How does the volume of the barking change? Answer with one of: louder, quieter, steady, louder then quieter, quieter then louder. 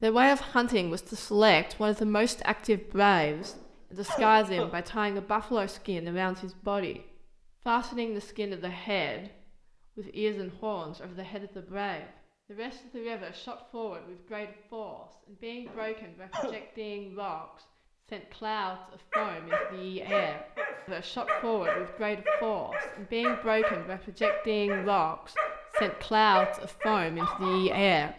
steady.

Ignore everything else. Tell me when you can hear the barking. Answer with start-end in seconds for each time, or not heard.
19.1-27.8.